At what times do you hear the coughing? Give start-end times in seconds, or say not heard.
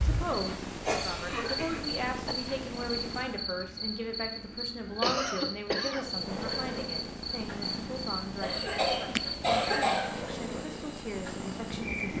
0.8-2.4, 5.0-6.0, 8.4-10.2.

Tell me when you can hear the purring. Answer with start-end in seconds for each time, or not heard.
0.0-3.5, 5.9-12.1.